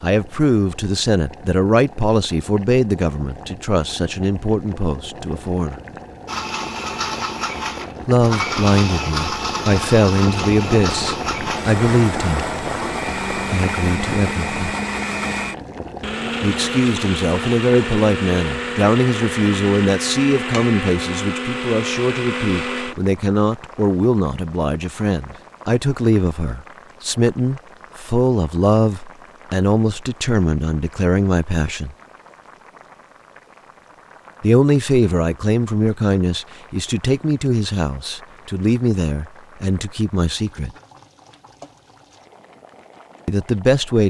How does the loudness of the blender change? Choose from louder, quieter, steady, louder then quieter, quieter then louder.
steady.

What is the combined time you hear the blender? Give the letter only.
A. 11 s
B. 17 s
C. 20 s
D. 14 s
B.